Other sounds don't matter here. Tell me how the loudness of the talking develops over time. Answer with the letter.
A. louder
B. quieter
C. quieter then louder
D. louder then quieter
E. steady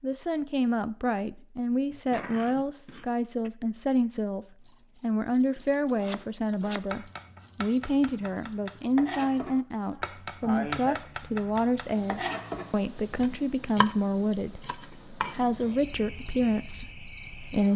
E.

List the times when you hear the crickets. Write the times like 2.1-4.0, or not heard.
4.3-17.7.